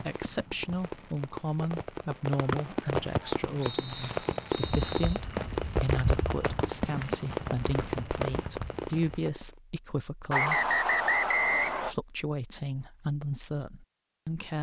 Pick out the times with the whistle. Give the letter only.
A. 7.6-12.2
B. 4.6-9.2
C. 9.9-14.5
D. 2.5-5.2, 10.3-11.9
D.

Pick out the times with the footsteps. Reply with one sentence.
You can hear the footsteps from 4.6 to 9.2 s.